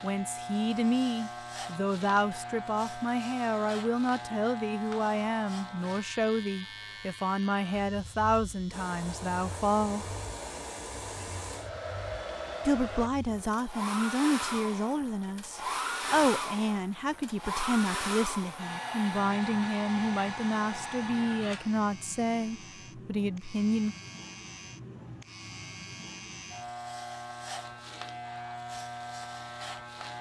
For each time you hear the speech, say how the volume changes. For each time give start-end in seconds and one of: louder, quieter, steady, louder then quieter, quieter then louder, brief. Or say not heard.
0.0-10.1 steady
12.7-23.9 steady.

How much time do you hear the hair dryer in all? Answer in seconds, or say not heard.
13 s.